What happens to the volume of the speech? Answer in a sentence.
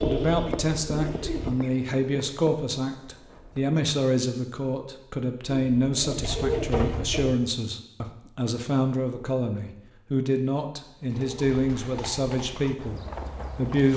The volume of the speech stays about the same.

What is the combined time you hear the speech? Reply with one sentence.
You can hear the speech for 14 seconds altogether.